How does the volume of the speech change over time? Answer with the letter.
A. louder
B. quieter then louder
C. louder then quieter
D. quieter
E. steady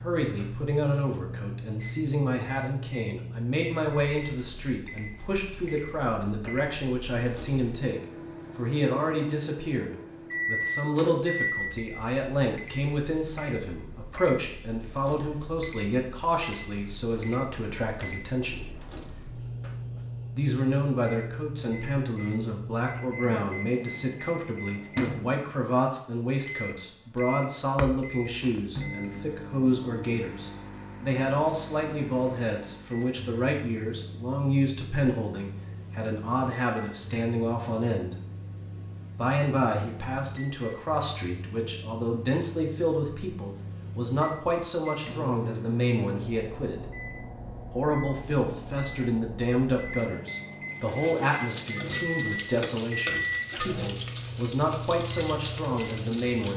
E.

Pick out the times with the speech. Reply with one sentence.
The speech can be heard from 0.0 to 18.7 s, from 20.4 to 38.1 s, from 39.1 to 47.0 s and from 47.7 to 56.5 s.